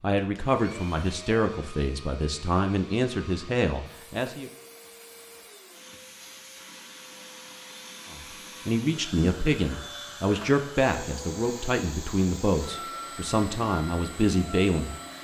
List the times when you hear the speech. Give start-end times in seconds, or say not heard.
0.0-4.5, 8.1-14.9.